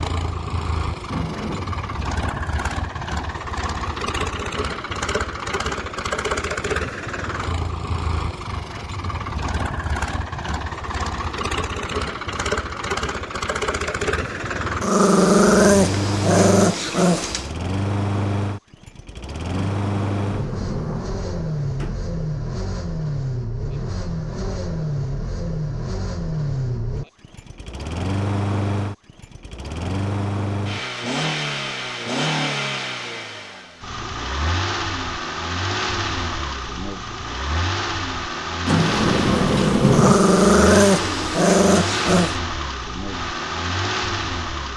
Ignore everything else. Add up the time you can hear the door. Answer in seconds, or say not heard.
5 s.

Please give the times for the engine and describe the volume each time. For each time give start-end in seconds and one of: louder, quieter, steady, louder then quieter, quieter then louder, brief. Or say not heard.
0.0-44.7 steady.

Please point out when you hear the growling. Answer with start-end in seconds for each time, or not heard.
14.8-17.5, 39.9-42.4.